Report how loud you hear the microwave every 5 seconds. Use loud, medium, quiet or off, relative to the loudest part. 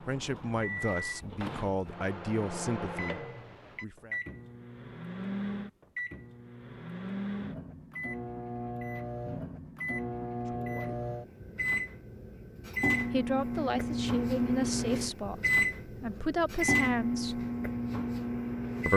medium, medium, loud, loud.